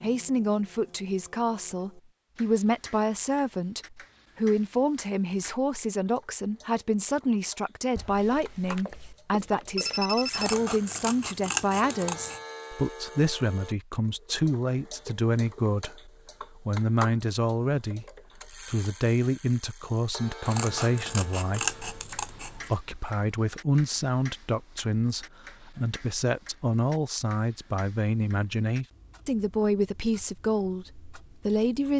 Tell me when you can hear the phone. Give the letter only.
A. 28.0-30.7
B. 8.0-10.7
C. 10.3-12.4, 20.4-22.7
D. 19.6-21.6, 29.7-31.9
B.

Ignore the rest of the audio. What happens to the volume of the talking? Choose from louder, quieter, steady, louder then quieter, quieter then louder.
steady.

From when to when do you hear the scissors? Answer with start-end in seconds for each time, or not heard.
10.3-12.4, 20.4-22.7.